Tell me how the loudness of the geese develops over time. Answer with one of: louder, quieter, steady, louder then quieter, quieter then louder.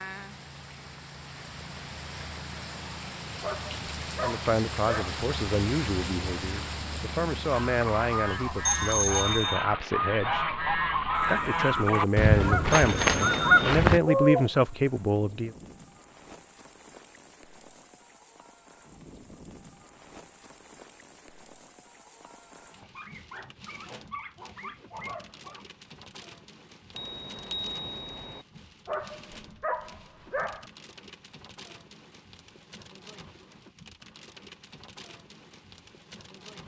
louder.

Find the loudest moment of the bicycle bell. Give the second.
9 s.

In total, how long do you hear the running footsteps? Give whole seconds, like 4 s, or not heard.
not heard.